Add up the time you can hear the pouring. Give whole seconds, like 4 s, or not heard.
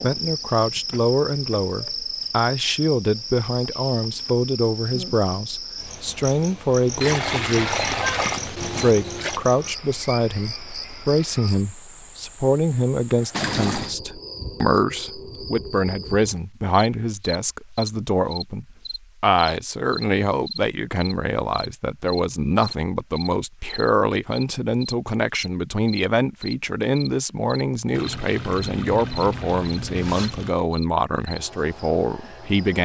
6 s.